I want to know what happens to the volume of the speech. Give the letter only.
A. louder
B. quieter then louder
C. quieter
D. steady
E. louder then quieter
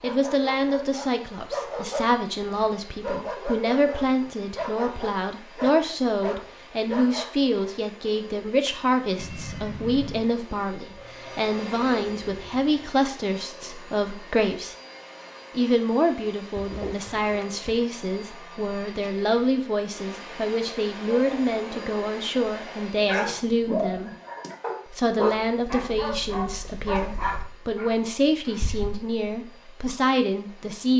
D.